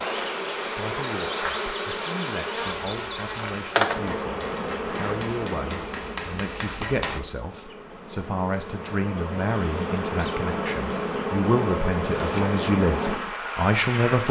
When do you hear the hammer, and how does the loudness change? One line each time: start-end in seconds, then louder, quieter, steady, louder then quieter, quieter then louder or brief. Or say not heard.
2.8-7.2 louder.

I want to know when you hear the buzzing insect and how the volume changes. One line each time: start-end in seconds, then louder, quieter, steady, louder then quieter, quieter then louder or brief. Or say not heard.
0.0-14.2 quieter then louder.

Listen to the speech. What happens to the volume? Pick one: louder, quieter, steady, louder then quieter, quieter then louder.
louder.